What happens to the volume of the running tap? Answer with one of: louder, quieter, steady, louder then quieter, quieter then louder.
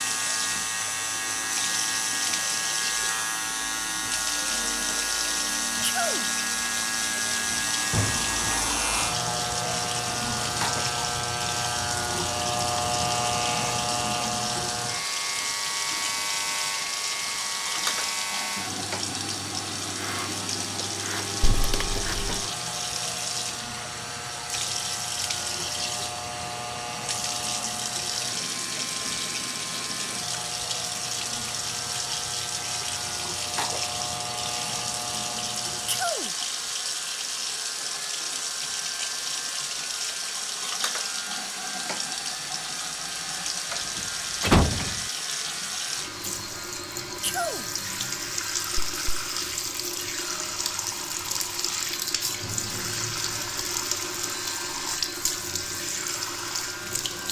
steady.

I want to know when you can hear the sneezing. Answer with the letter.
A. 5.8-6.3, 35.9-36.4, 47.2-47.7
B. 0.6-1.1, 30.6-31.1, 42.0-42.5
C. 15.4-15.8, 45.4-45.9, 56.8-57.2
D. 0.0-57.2
A.